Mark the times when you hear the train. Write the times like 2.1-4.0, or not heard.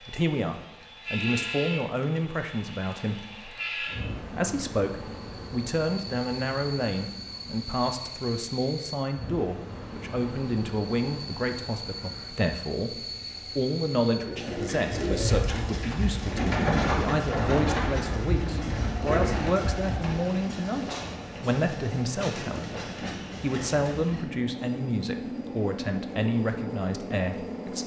0.0-27.8.